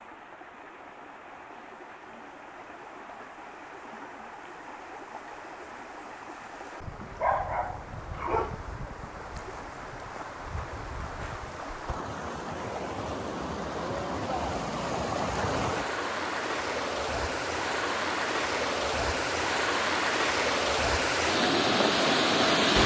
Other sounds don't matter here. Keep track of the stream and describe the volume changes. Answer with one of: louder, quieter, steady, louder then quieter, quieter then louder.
louder.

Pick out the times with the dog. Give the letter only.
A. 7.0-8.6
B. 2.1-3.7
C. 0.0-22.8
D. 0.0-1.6
A.